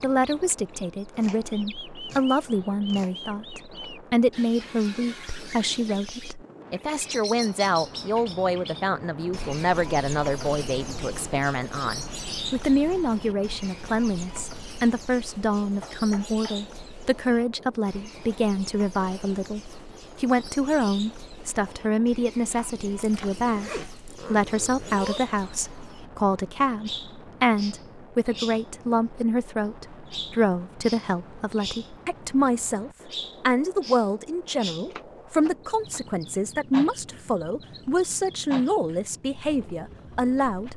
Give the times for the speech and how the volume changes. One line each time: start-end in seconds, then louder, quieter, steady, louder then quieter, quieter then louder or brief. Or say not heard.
0.0-40.7 steady.